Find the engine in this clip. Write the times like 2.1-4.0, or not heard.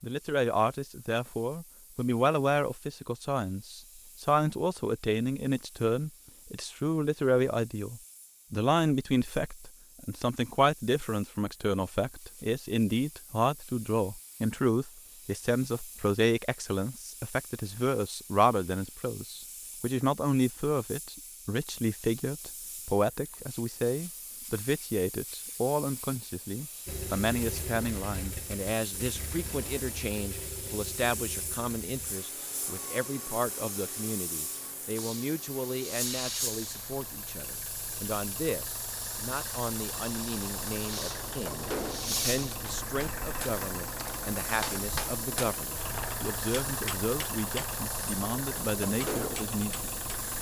26.9-50.3.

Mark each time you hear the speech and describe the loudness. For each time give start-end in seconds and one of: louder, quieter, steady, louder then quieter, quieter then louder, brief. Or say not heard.
0.0-50.3 quieter.